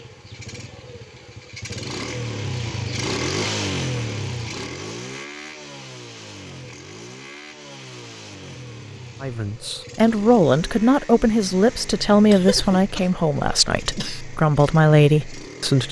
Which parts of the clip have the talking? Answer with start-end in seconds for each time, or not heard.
9.2-15.8.